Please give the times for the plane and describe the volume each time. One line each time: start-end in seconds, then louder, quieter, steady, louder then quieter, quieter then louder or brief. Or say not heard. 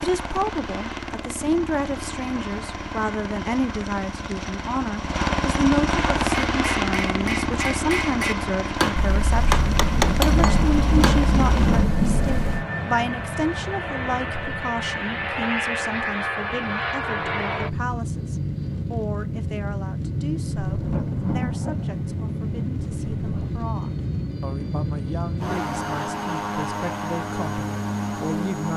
0.0-28.7 steady.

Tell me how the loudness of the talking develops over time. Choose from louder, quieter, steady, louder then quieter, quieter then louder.
quieter.